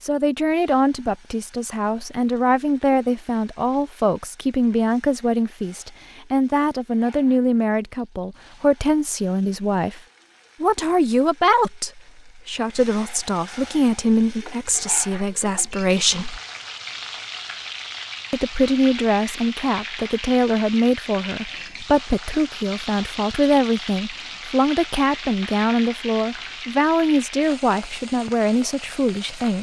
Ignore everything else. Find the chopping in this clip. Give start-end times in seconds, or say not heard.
not heard.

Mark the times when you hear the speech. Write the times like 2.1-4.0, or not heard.
0.0-10.0, 10.6-16.4, 18.3-29.5.